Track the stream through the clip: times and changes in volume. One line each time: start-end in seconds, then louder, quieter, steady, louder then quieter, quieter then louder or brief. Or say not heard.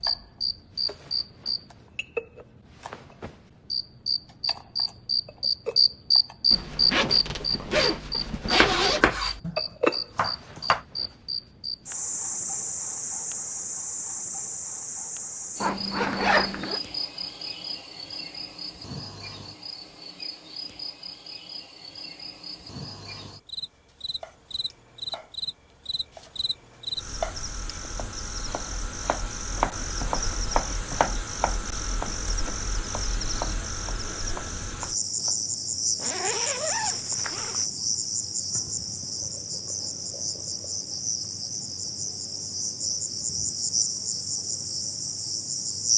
not heard.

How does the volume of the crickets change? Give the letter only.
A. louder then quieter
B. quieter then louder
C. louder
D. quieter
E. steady
B.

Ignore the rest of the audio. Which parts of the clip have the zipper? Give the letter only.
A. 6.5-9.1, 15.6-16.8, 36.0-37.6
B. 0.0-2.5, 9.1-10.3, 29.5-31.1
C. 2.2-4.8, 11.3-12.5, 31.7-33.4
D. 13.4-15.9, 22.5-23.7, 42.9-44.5
A.